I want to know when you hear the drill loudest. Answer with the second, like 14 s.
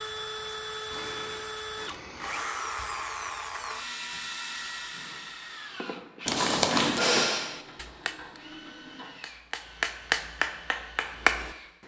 3 s.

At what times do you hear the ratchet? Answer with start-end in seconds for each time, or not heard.
0.9-2.5, 7.2-9.2.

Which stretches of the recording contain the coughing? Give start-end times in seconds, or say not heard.
6.2-7.0.